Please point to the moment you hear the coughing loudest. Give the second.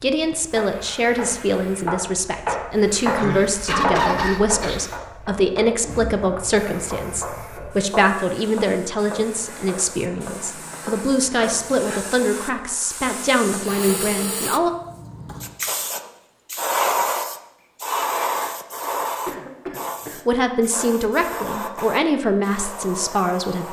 4 s.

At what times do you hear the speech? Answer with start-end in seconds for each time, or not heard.
0.0-14.7, 20.2-23.6.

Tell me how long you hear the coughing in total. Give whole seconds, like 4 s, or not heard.
3 s.